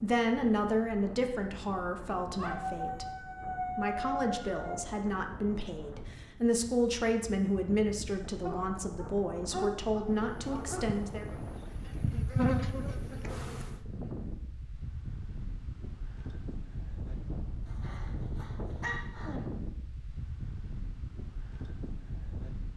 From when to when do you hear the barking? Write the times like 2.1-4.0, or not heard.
2.4-4.8, 8.4-10.8, 17.6-19.4.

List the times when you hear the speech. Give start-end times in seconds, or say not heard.
0.0-11.3.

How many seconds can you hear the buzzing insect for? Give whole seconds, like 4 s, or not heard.
4 s.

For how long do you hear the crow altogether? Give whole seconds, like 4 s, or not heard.
not heard.